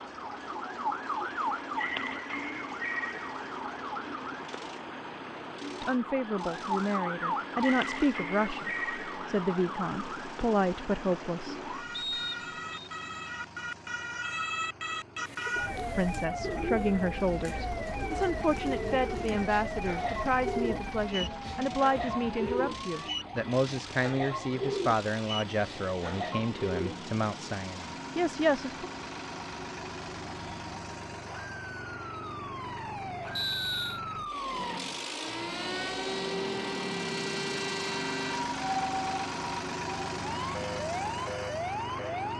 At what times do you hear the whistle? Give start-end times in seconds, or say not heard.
11.9-12.9, 33.4-34.0.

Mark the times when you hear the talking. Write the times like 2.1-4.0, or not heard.
5.8-11.6, 15.9-28.9.